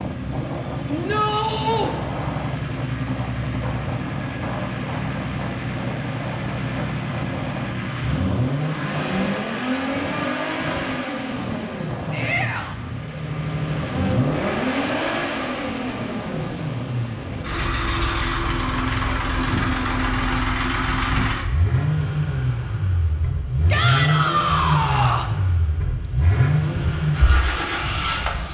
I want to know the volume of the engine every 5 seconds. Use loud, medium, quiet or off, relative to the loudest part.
medium, loud, loud, loud, loud, loud.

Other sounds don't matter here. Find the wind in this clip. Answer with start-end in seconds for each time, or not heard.
0.0-20.3.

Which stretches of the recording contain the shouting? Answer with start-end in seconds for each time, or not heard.
0.8-1.9, 12.1-12.8, 23.7-25.3.